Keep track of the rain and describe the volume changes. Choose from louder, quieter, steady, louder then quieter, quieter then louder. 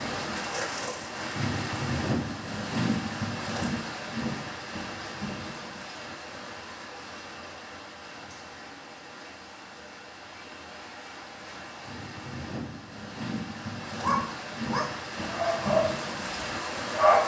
quieter then louder.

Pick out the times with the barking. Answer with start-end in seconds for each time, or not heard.
14.0-17.2.